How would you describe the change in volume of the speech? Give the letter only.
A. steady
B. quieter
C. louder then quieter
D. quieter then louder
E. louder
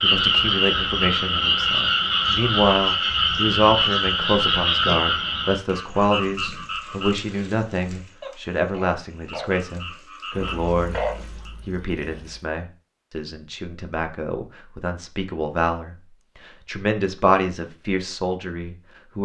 D.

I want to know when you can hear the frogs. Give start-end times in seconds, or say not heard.
0.0-11.5.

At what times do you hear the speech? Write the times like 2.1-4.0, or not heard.
0.0-11.1, 11.7-19.1.